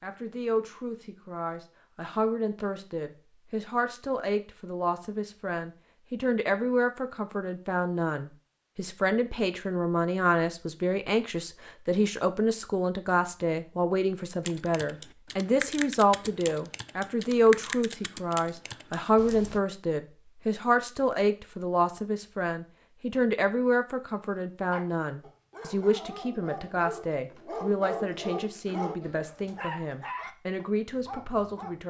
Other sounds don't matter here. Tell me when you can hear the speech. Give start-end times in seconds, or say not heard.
0.0-31.8.